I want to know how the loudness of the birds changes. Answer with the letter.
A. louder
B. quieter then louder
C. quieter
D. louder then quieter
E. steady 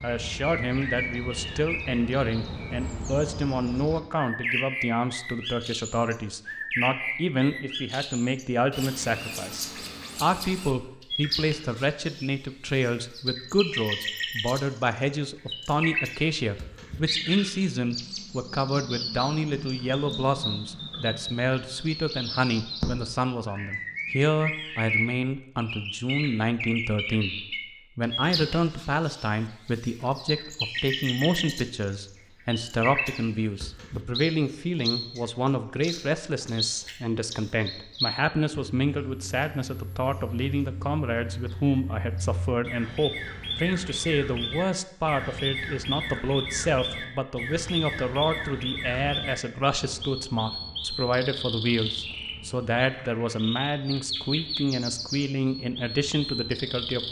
E.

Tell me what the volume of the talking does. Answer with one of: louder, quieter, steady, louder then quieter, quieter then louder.
steady.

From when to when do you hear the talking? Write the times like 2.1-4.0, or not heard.
0.0-57.0.